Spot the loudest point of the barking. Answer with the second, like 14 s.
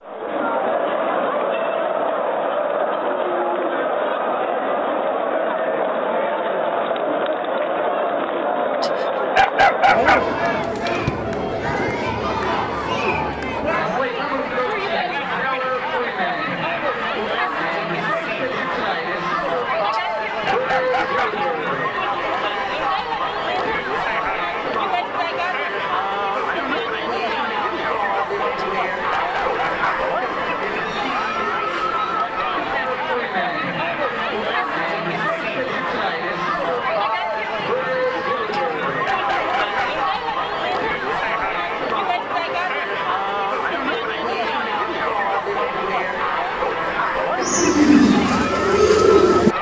10 s.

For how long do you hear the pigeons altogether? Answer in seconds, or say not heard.
2 s.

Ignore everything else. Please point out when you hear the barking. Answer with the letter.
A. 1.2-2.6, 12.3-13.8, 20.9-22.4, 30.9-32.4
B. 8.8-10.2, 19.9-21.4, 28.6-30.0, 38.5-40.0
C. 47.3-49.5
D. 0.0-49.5
B.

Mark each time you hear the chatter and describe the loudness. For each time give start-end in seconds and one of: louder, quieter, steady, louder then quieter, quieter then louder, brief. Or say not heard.
0.0-49.5 steady.